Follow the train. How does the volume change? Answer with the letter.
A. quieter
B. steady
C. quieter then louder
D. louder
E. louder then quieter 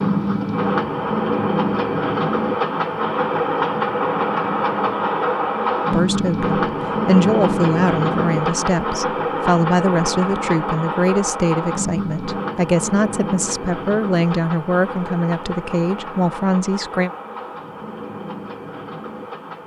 A.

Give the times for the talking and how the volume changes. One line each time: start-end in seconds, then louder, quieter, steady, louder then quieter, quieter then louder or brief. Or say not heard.
5.9-17.1 steady.